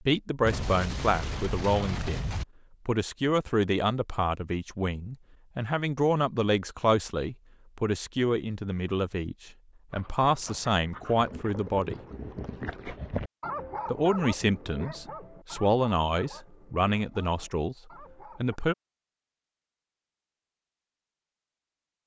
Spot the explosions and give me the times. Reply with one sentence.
The explosions can be heard from 0.4 to 2.5 s.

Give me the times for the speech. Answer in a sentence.
The speech can be heard from 0.1 to 12.0 s and from 13.8 to 18.8 s.